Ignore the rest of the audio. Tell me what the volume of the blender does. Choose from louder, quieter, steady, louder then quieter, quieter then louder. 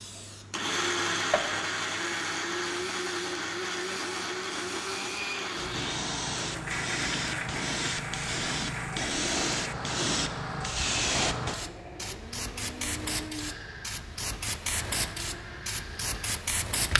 quieter.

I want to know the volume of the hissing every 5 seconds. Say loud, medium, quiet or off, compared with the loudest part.
medium, loud, loud, loud.